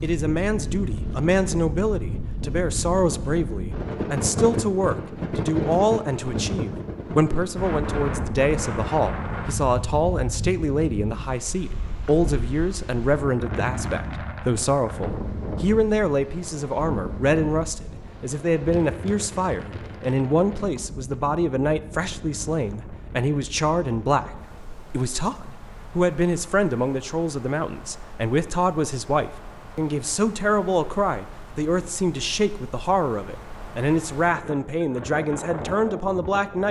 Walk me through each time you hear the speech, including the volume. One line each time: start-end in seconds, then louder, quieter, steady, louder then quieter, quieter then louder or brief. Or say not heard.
0.0-36.6 steady.